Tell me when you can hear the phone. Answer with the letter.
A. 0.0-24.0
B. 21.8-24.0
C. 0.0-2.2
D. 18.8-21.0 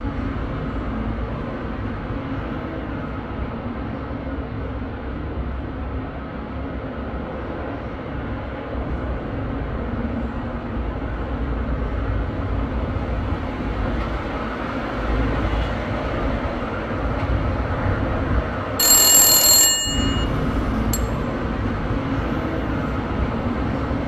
D.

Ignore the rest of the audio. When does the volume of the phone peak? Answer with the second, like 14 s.
19 s.